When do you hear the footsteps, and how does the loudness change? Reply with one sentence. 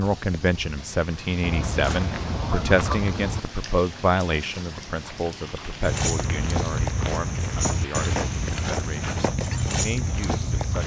The footsteps can be heard from 5.8 to 10.8 s, at a steady volume.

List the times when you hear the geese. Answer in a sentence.
The geese can be heard from 1.4 to 3.4 s.